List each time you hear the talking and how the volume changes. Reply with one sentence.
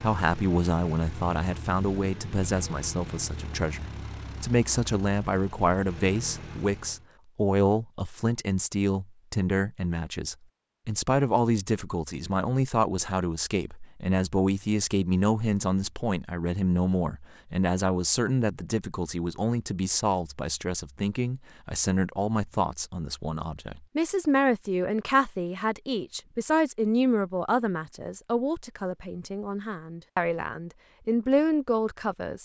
The talking can be heard from 0.0 to 32.3 s, at a steady volume.